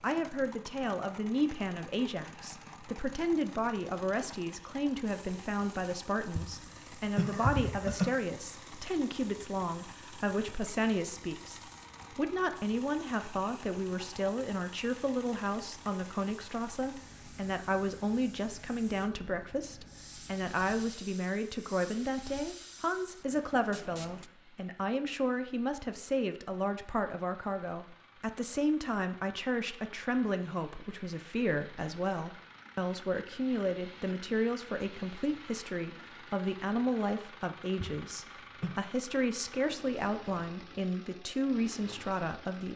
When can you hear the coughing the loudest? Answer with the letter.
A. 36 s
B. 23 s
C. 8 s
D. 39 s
C.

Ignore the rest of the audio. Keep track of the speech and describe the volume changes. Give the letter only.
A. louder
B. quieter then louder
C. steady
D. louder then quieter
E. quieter
C.